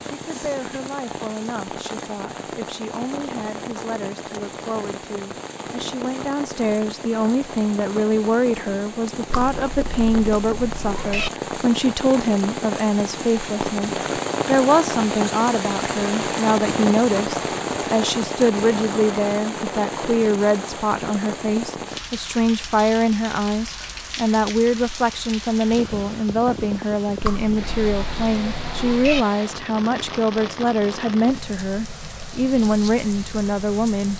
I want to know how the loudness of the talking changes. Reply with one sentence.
The loudness of the talking goes up.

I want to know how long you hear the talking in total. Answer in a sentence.
The talking can be heard for 34 seconds in total.